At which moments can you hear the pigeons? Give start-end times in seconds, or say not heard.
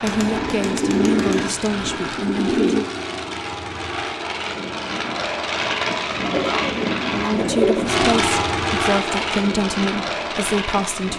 0.1-2.9, 6.3-7.8.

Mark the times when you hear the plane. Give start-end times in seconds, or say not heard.
0.0-11.1.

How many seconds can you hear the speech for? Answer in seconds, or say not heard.
7 s.